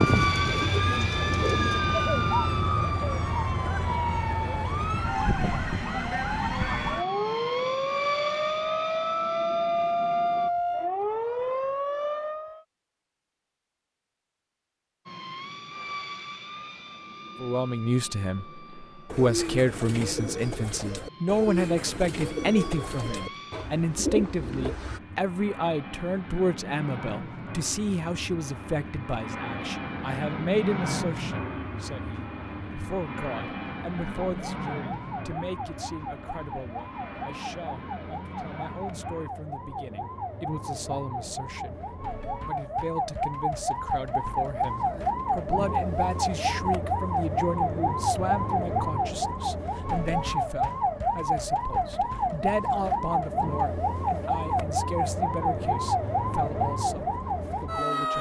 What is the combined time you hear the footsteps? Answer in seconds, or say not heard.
not heard.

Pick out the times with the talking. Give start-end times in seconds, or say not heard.
17.4-41.8, 42.4-58.1.